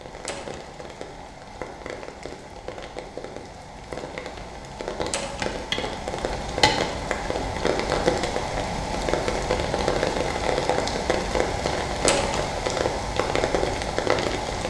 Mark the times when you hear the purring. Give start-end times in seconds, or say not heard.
not heard.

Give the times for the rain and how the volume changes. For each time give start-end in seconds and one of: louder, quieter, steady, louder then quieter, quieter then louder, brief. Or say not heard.
0.0-14.6 louder.